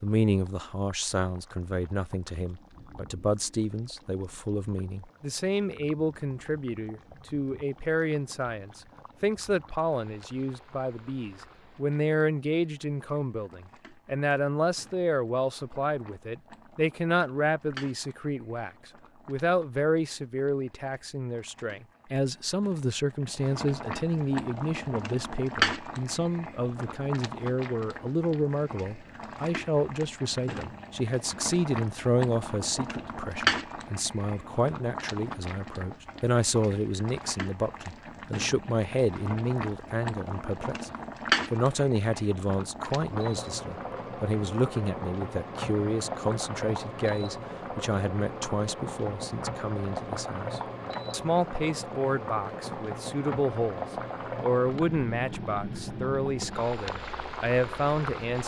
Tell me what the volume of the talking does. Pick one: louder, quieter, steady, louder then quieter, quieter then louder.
steady.